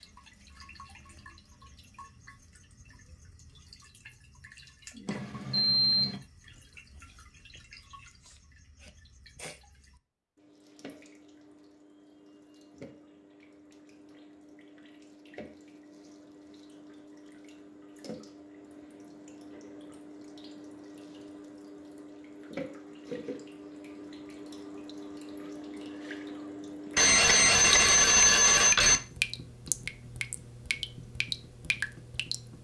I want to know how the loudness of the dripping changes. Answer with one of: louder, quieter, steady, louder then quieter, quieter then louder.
louder.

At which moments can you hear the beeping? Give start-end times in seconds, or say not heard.
5.0-6.2, 26.9-29.0.